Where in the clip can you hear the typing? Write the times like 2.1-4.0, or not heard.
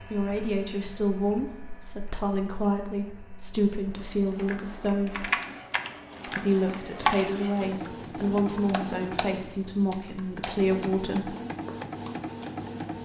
5.0-12.7.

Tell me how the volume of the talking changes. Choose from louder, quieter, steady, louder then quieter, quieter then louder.
steady.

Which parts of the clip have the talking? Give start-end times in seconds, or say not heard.
0.0-5.3, 6.2-11.3.